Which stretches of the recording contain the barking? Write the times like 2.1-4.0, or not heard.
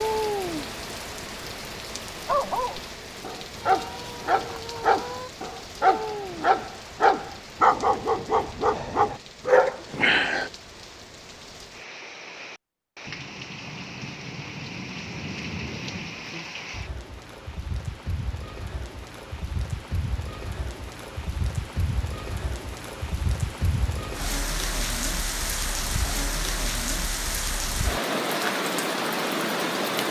2.2-10.5.